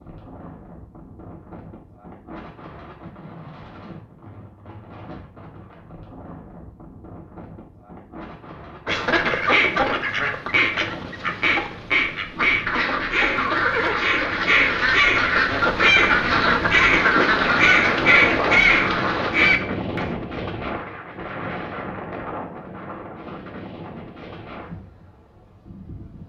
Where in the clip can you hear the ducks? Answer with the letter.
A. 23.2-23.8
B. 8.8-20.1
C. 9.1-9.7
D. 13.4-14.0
B.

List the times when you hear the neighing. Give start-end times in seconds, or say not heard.
13.4-14.0.